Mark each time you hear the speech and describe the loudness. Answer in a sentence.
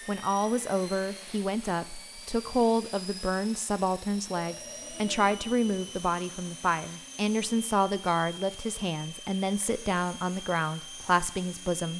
You can hear the speech from 0.1 to 11.9 s, at a steady volume.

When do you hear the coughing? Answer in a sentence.
The coughing can't be heard in this clip.